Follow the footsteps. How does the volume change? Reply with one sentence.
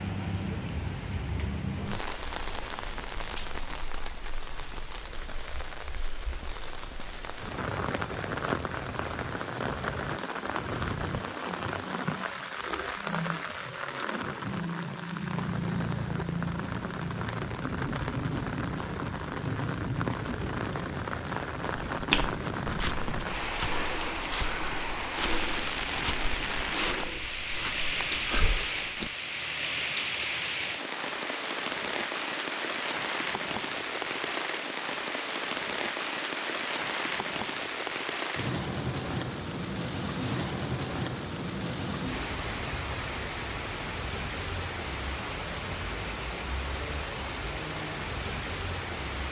The loudness of the footsteps stays about the same.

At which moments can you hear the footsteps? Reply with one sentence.
You can hear the footsteps from 21.9 to 29.1 s.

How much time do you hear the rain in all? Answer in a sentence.
The rain can be heard for 49 seconds in total.